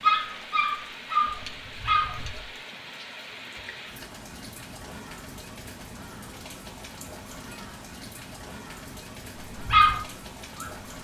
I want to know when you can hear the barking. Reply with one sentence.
You can hear the barking from 0.0 to 2.4 s and from 9.7 to 10.8 s.